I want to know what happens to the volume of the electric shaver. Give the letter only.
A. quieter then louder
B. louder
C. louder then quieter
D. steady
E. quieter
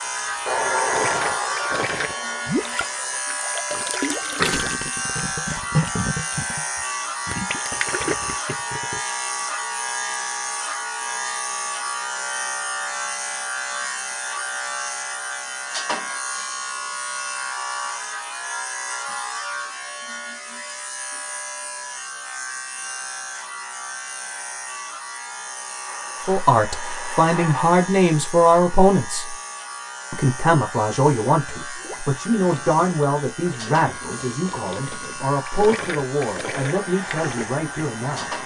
E.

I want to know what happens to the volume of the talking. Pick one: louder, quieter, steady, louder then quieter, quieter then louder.
quieter.